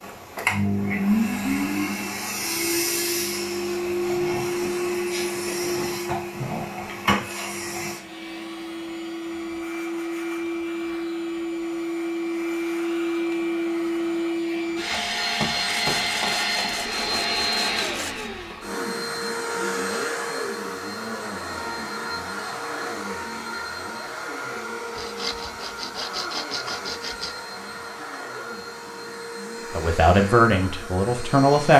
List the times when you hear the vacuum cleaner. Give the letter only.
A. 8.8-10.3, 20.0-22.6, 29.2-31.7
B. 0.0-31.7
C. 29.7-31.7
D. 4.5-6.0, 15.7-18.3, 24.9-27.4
B.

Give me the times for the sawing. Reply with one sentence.
You can hear the sawing from 4.5 to 6.0 s, from 15.7 to 18.3 s and from 24.9 to 27.4 s.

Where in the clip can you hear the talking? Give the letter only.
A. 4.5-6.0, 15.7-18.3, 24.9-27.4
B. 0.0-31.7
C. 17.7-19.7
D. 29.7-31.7
D.